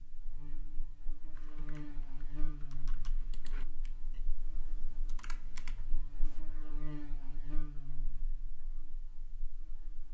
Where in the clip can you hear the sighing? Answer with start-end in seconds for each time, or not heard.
not heard.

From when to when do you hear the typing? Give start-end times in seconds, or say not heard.
1.3-6.4.